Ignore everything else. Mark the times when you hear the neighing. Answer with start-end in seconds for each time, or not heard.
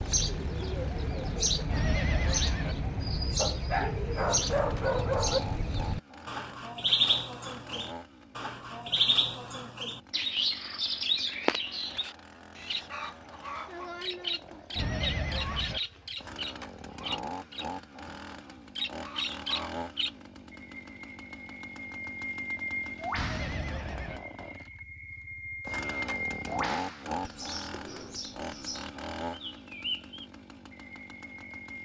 1.6-2.8, 14.8-15.8, 23.1-24.2.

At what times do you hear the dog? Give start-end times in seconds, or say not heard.
3.4-5.4.